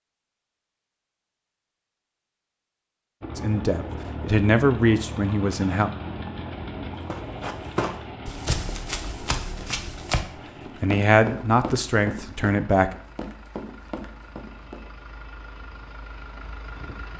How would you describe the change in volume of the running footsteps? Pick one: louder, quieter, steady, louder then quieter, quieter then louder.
quieter.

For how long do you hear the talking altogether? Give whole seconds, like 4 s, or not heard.
5 s.